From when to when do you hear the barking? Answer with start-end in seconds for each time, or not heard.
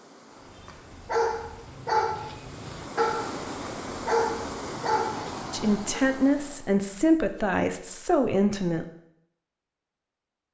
0.6-6.0.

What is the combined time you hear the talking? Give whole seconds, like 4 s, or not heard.
3 s.